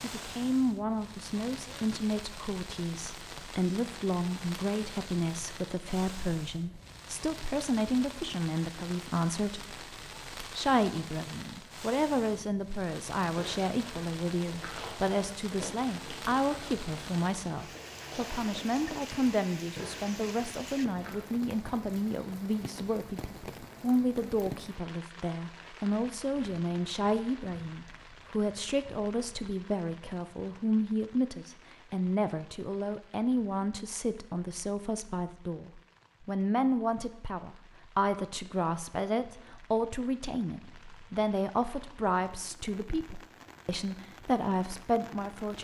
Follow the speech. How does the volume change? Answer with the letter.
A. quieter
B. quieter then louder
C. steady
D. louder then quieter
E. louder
C.